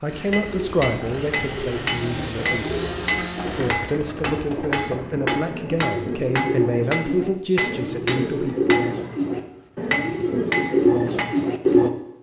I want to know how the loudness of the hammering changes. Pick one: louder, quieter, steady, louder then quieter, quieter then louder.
steady.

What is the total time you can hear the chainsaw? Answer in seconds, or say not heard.
4 s.